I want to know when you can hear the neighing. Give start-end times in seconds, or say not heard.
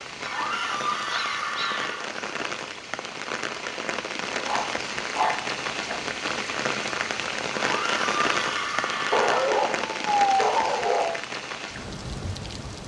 0.2-2.1, 7.5-9.6.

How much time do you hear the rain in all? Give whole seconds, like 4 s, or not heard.
13 s.